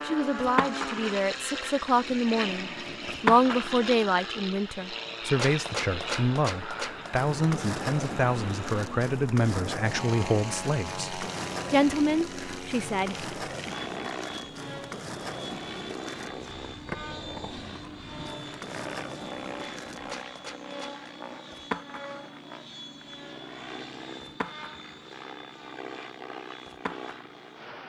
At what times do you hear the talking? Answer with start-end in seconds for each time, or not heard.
0.0-13.2.